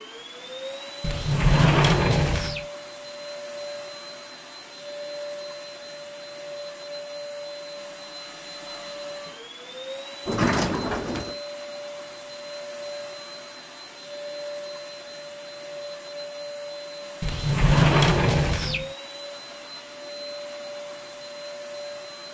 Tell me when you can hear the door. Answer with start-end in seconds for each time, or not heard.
1.0-2.6, 10.2-11.3, 17.2-18.9.